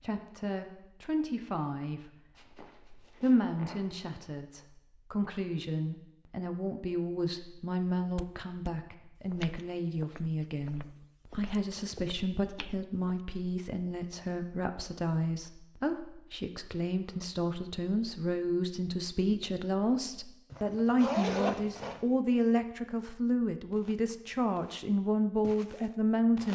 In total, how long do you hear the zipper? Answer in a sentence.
The zipper can be heard for 3 seconds in total.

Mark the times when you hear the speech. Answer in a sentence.
The speech can be heard from 0.0 to 26.5 s.